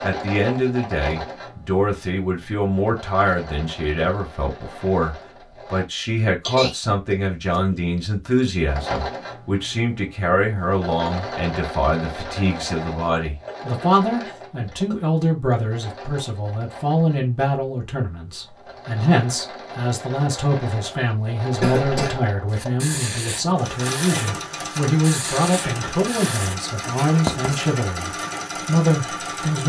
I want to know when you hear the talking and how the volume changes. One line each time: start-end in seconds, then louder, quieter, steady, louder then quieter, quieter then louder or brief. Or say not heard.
0.0-29.6 steady.